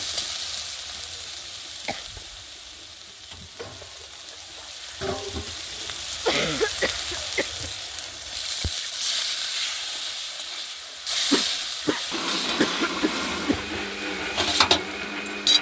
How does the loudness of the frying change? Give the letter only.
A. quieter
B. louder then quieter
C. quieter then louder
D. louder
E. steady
D.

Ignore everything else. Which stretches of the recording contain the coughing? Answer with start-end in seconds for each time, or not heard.
1.9-2.4, 6.2-7.7, 11.1-13.8.